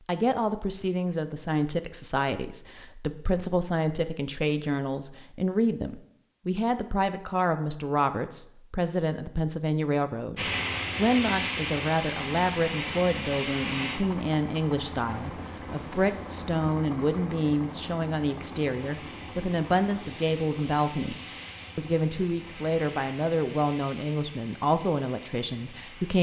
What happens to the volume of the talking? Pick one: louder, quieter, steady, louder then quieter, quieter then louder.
steady.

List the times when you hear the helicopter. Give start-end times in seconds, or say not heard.
10.3-26.1.